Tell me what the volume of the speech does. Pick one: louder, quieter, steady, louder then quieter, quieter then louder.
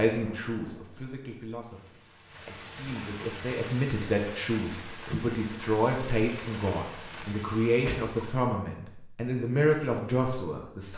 louder.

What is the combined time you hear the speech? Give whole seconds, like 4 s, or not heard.
11 s.